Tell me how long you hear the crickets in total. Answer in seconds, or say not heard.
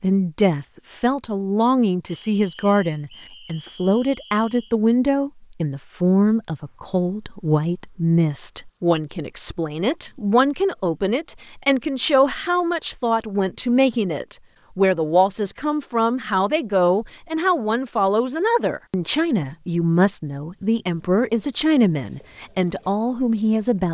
17 s.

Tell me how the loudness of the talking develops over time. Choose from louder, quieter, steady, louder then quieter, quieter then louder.
steady.